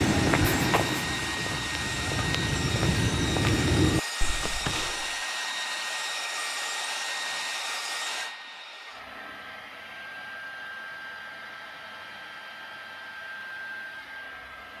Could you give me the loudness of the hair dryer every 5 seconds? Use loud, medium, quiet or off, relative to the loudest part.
loud, loud, medium.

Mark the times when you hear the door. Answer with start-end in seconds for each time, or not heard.
4.3-5.0.